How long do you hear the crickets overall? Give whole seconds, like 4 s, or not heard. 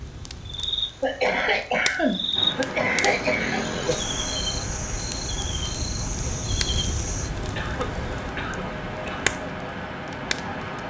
7 s.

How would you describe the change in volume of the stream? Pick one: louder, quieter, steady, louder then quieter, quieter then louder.
quieter then louder.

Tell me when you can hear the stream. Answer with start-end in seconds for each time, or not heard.
2.3-10.8.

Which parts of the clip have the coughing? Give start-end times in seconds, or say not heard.
1.0-3.6, 7.4-9.3.